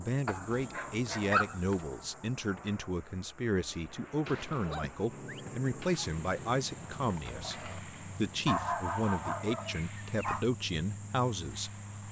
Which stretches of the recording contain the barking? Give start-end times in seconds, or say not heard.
0.2-1.8, 4.5-6.1, 8.4-10.4.